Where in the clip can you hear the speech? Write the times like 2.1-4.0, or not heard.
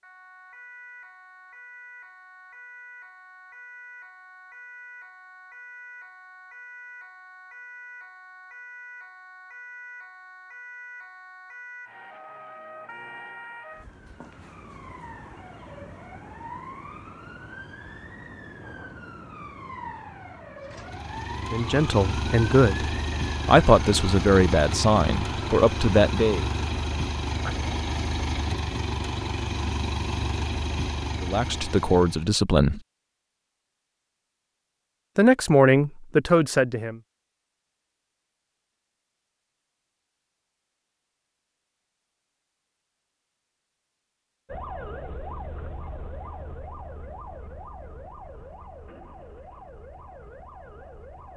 21.4-26.4, 31.2-32.8, 35.1-37.0.